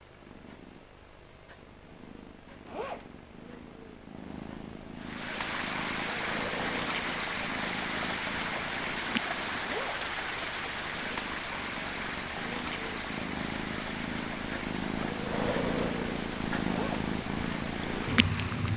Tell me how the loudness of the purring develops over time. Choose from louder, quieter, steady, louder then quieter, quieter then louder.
louder.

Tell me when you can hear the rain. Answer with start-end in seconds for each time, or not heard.
5.0-18.7.